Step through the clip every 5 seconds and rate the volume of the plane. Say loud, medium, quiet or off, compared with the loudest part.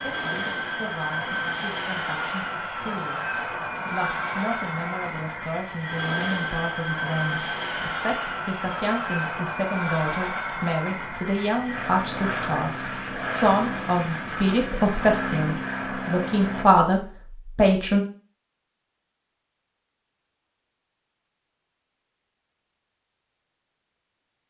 loud, loud, loud, loud, off.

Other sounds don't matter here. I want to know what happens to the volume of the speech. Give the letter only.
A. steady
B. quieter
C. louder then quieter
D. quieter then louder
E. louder
E.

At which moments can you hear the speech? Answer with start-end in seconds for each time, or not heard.
0.0-18.1.